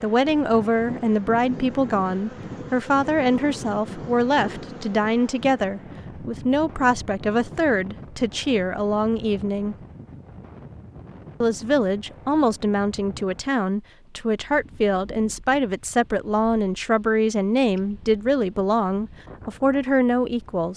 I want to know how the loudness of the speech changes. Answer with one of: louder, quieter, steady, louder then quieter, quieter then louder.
steady.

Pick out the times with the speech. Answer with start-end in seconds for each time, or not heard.
0.0-9.8, 11.4-20.7.